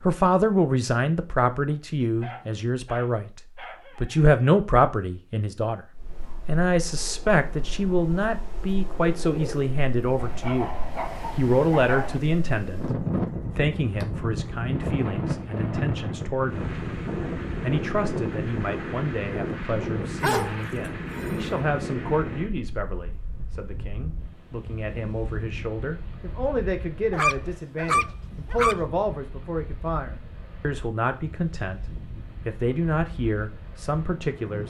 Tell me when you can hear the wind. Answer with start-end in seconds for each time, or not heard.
5.9-34.6.